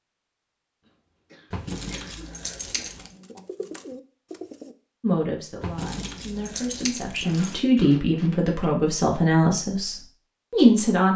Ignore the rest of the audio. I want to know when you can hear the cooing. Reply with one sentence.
The cooing can be heard from 2.7 to 4.8 s.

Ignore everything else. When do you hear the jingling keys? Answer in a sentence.
You can hear the jingling keys from 1.5 to 3.1 s and from 5.6 to 7.6 s.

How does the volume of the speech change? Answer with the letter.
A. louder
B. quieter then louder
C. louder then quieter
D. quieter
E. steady
A.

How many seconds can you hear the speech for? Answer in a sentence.
The speech can be heard for 6 seconds in total.